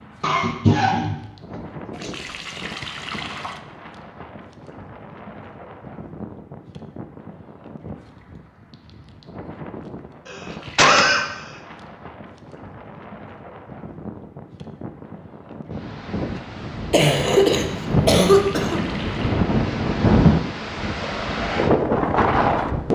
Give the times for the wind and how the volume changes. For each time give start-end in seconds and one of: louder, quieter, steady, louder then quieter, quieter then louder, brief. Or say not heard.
0.0-22.9 louder.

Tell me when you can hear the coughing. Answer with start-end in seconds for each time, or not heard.
0.2-2.1, 10.2-11.2, 16.9-18.8.